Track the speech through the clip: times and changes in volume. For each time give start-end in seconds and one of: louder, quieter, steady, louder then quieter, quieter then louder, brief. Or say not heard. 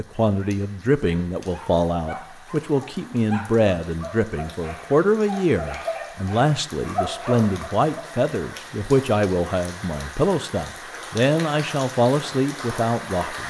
0.0-13.4 steady.